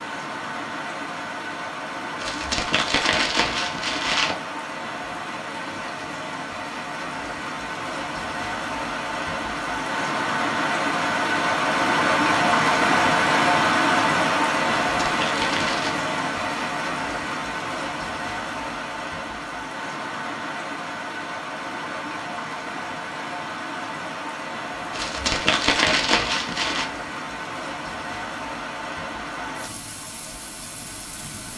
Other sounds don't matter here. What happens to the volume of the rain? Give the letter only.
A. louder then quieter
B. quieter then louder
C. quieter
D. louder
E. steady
A.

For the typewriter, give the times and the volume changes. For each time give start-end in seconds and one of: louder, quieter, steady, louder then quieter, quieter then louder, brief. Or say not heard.
not heard.